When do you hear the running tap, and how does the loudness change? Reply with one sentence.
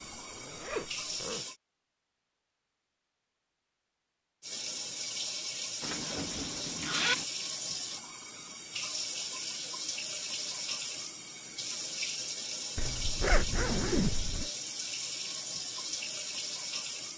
The running tap can be heard briefly from 0.0 to 1.6 s; and from 4.4 to 17.1 s, at a steady volume.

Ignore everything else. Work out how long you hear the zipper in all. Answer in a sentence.
The zipper can be heard for 5 seconds in total.